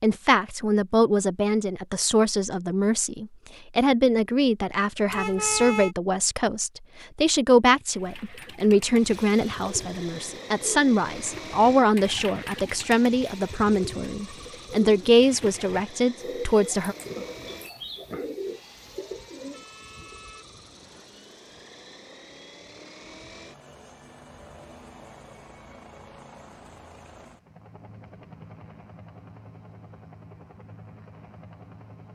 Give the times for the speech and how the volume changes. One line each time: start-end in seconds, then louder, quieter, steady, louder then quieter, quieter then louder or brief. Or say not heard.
0.0-16.9 steady.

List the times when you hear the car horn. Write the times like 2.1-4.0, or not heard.
5.1-6.0, 18.4-21.1.